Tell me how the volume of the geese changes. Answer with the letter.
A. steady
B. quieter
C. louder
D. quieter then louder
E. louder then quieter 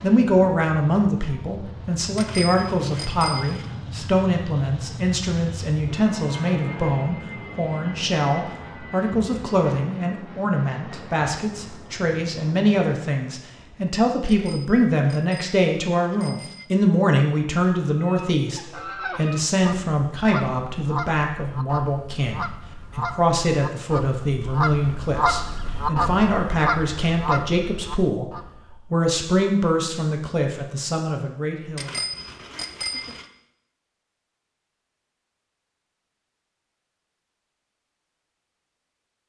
C.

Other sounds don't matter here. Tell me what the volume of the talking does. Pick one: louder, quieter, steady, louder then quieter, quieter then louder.
steady.